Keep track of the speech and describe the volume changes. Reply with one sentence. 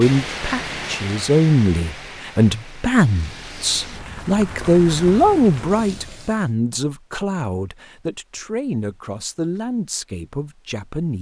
The volume of the speech goes down.